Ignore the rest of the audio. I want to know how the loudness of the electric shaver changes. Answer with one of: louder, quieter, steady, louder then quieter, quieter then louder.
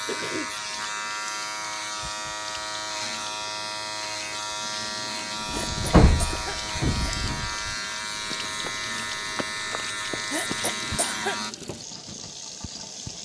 steady.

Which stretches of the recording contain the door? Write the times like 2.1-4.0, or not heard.
5.6-7.0.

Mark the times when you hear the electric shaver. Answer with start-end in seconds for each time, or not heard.
0.0-11.6.